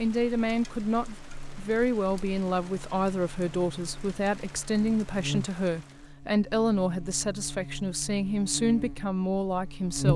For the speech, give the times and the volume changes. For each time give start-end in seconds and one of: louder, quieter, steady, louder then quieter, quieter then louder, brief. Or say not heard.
0.0-10.1 steady.